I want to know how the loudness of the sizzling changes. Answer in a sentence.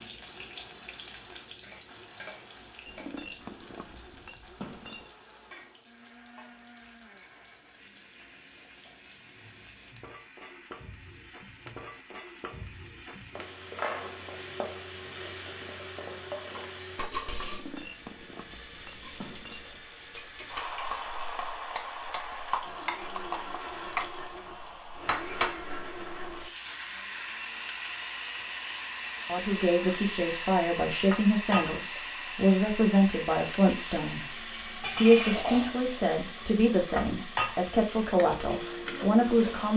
The volume of the sizzling goes up.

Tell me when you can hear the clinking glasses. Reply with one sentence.
You can hear the clinking glasses from 2.9 to 5.1 s, from 17.4 to 19.8 s and from 34.8 to 36.5 s.